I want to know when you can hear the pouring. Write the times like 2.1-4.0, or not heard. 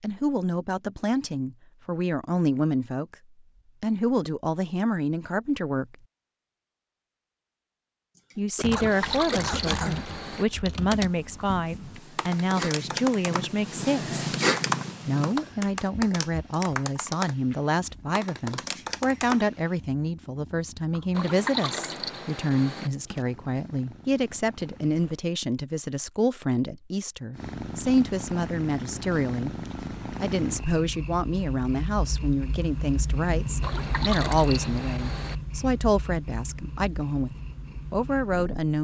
8.7-10.4, 21.1-22.9, 33.6-35.4.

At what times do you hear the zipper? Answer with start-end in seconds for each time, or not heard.
not heard.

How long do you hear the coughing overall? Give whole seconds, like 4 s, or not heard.
2 s.